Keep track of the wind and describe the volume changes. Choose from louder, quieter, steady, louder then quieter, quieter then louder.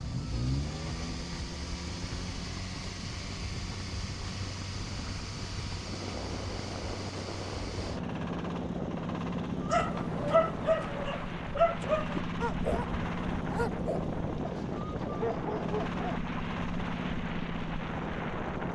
louder.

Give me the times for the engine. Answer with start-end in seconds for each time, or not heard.
0.0-18.7.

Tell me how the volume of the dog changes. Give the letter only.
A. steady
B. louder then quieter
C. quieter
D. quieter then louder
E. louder
C.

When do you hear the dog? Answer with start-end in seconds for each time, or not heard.
9.7-16.2.